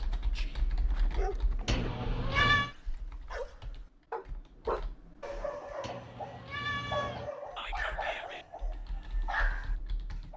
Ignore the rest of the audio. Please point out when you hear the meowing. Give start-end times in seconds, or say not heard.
1.6-2.7, 5.8-7.3.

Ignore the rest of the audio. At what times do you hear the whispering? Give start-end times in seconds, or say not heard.
0.3-0.8, 7.5-8.4.